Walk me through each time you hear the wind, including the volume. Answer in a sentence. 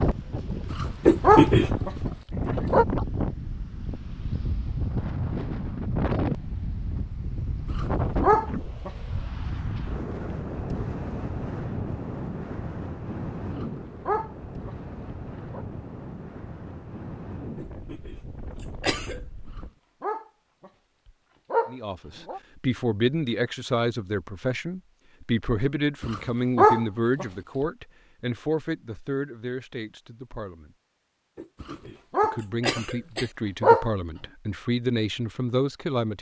The wind can be heard from 0.0 to 19.7 s, getting quieter.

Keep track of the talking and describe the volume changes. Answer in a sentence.
The volume of the talking goes down, then up.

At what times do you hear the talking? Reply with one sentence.
The talking can be heard from 21.6 to 30.8 s and from 32.2 to 36.1 s.